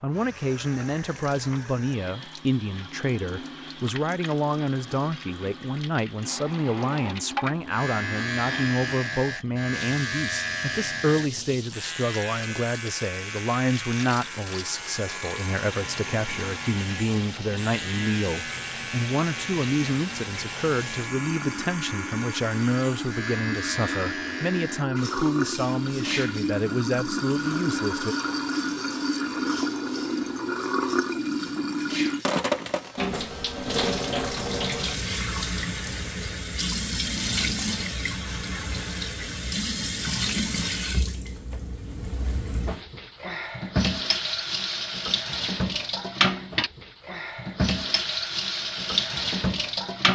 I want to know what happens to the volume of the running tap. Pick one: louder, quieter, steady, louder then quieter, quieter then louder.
louder.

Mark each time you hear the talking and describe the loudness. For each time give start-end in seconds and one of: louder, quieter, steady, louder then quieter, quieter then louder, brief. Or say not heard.
0.0-28.1 steady.